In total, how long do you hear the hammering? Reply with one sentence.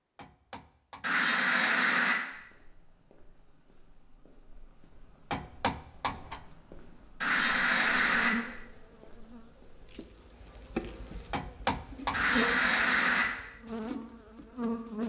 The hammering can be heard for 3 seconds in total.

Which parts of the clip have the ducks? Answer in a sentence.
You can hear the ducks from 1.0 to 2.1 s, from 7.2 to 8.3 s and from 12.1 to 13.2 s.